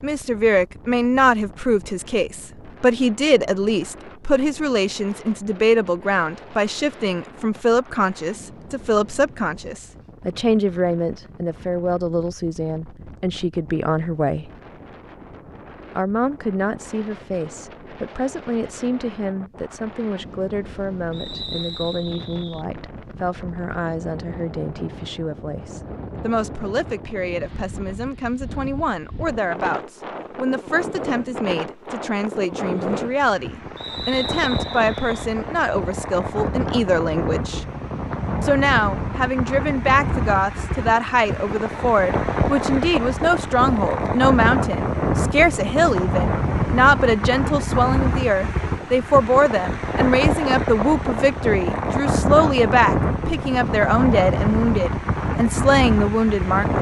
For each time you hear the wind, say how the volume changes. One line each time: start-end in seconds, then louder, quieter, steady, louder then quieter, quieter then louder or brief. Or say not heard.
0.0-56.7 louder.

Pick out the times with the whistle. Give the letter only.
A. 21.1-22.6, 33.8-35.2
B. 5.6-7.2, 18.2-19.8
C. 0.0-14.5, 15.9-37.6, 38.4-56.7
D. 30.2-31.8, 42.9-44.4
A.